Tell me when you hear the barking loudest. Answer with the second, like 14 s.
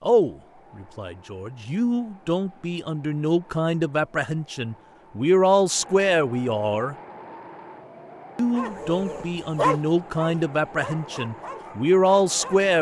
10 s.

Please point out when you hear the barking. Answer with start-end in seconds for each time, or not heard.
8.6-12.7.